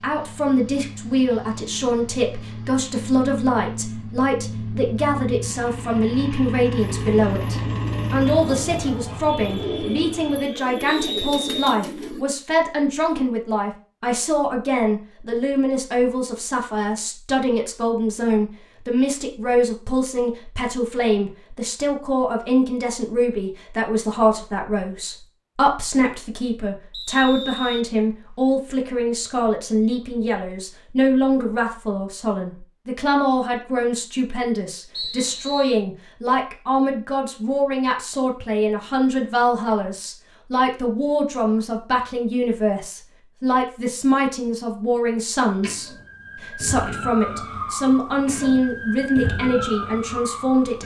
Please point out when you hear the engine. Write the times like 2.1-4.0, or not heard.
0.0-10.4.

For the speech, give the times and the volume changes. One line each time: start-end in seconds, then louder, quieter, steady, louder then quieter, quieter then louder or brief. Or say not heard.
0.0-50.8 steady.